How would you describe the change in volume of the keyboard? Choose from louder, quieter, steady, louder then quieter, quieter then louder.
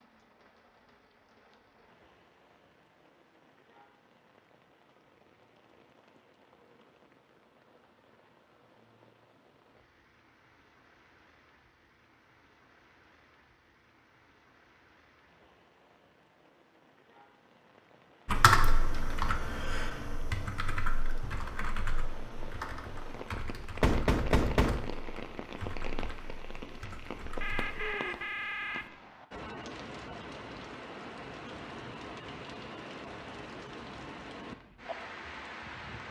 quieter.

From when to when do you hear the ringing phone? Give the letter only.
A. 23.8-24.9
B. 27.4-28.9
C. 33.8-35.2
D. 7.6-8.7
B.